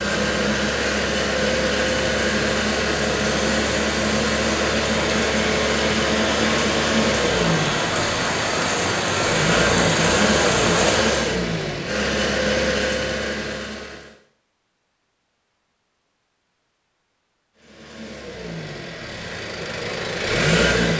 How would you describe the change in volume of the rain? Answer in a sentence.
The volume of the rain goes up.